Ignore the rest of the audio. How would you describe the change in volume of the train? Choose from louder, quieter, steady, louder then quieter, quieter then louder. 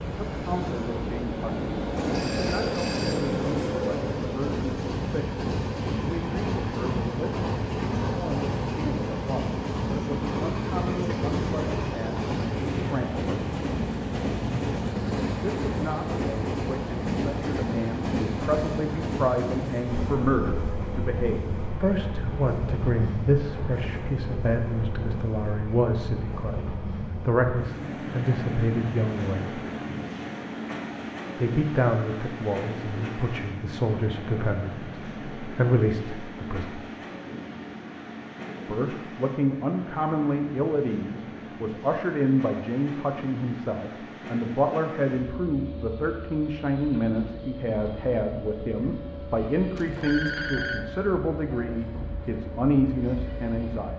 quieter.